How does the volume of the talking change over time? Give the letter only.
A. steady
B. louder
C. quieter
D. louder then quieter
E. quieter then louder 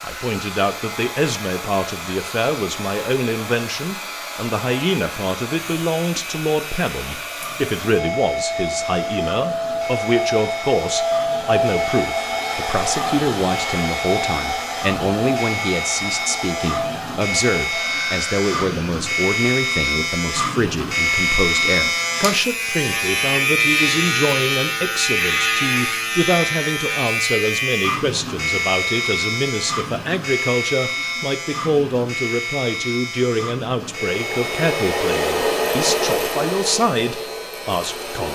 A.